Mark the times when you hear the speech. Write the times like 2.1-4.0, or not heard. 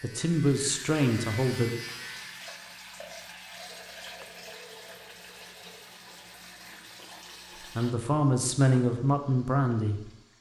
0.0-1.7, 7.6-10.1.